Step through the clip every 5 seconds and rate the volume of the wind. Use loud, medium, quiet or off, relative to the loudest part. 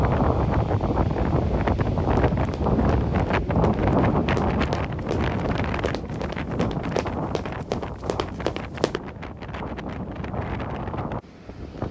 loud, medium, medium.